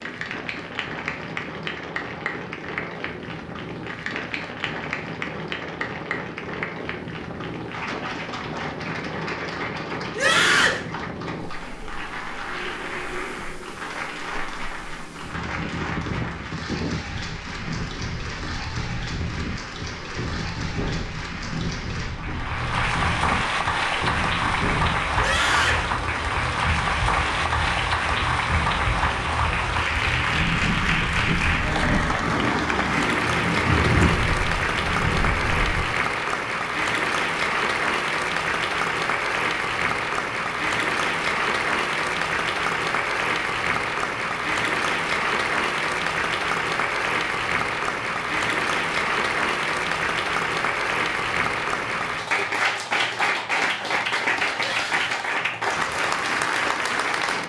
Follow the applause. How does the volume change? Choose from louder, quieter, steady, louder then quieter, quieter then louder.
louder.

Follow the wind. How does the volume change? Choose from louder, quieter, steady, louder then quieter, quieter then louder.
louder.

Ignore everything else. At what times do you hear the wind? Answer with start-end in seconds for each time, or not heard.
0.0-36.0.